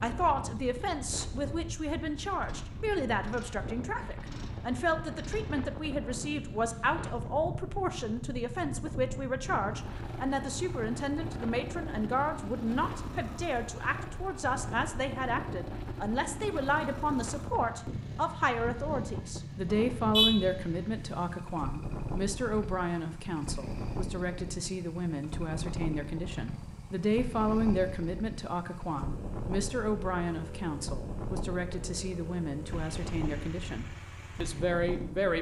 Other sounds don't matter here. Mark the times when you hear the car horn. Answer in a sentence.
The car horn can be heard from 19.7 to 20.3 s.